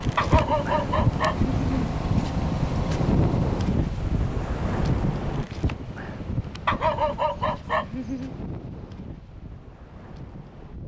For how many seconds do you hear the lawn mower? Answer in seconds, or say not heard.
4 s.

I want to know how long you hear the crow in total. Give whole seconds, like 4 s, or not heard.
not heard.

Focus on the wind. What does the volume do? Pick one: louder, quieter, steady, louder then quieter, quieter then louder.
quieter.